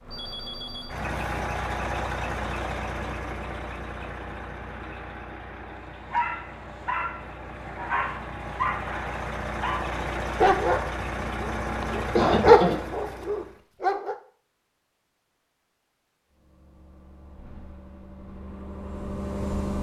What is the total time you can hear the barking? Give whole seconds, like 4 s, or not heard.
8 s.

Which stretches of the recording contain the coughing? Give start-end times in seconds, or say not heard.
11.9-12.8.